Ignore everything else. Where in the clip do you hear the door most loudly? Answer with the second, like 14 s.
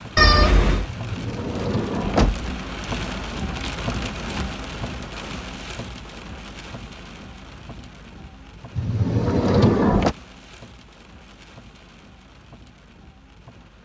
10 s.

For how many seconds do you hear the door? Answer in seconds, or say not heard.
3 s.